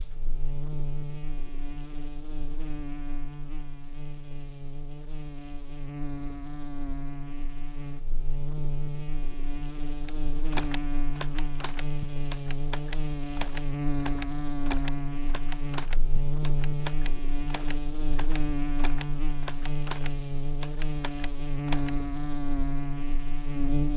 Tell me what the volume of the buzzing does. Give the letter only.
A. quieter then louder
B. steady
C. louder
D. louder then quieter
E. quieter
C.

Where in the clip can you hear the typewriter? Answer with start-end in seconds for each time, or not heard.
10.1-21.9.